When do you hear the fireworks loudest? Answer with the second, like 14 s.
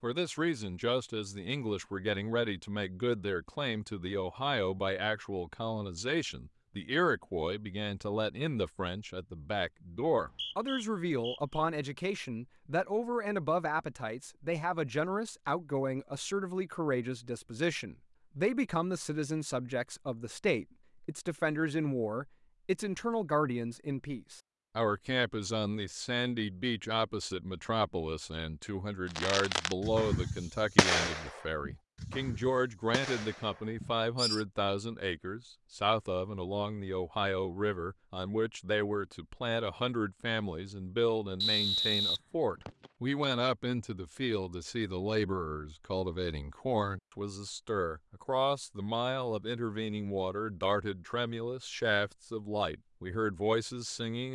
31 s.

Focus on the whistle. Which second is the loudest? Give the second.
42 s.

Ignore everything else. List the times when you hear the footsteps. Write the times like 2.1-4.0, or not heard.
not heard.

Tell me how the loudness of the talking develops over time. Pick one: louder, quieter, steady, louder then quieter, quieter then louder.
steady.